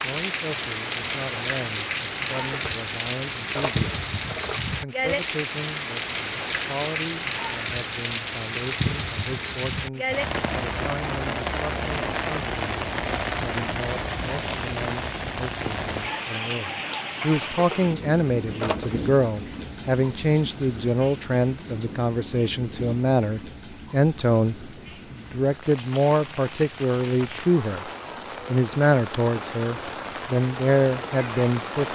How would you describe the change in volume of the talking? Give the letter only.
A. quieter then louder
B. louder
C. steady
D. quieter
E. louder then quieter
B.